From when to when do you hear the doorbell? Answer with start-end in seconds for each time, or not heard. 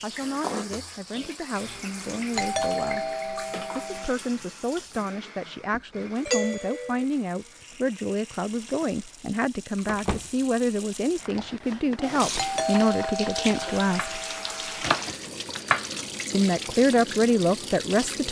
2.4-4.2, 6.2-7.0, 12.3-14.8.